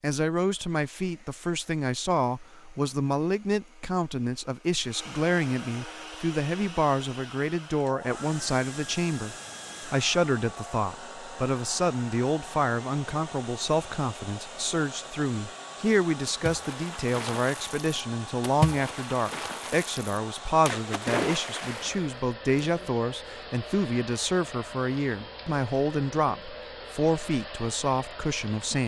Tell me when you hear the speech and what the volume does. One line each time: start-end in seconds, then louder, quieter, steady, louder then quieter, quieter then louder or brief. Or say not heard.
0.0-28.8 steady.